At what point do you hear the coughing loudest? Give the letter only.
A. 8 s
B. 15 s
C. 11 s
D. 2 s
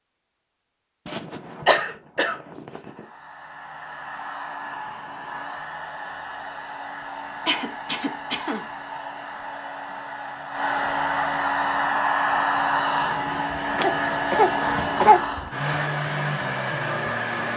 B.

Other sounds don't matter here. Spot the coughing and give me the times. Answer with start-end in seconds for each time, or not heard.
1.1-3.0, 7.5-8.7, 13.8-15.5.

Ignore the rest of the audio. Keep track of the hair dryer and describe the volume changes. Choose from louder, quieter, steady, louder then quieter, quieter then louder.
louder.